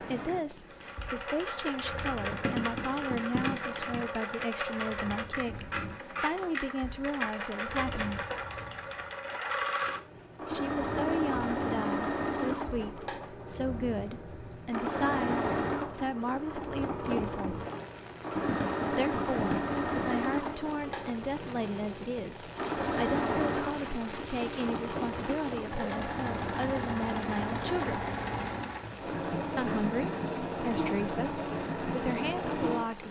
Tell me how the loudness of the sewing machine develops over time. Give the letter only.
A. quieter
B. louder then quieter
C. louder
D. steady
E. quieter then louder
D.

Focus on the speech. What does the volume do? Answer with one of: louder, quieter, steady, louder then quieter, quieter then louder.
steady.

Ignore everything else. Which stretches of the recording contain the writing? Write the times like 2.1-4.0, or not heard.
2.3-4.1, 18.4-19.9.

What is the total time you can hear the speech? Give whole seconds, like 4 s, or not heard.
28 s.